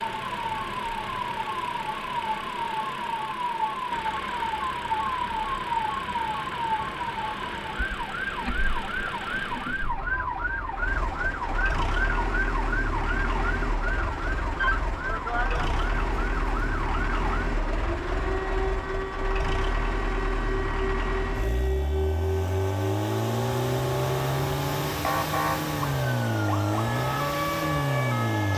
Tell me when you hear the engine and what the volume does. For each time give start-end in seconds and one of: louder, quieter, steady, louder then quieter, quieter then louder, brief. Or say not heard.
0.0-28.5 louder.